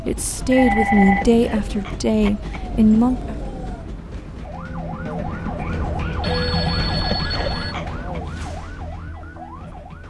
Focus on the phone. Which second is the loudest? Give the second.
1 s.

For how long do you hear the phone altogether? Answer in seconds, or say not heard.
4 s.